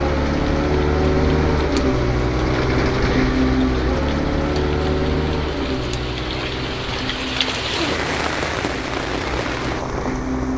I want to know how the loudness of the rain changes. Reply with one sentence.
The volume of the rain goes up.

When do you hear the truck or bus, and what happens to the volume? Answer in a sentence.
The truck or bus can be heard from 0.0 to 10.5 s, getting quieter.